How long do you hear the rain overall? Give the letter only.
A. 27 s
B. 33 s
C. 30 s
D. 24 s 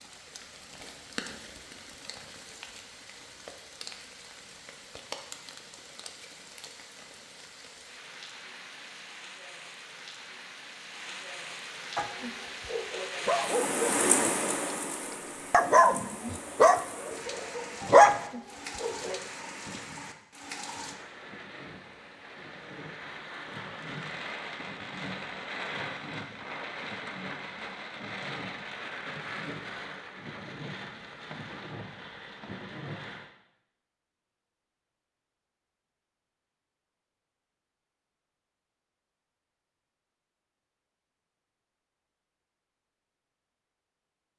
B.